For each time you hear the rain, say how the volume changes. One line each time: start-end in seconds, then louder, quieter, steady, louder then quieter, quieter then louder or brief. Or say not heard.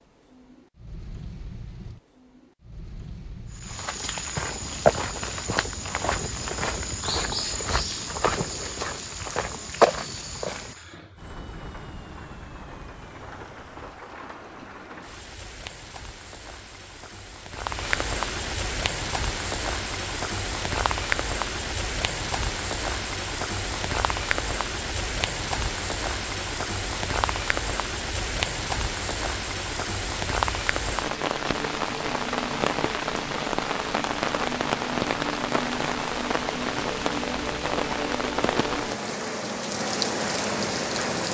0.0-41.2 louder.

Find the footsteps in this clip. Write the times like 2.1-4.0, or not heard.
3.5-10.8.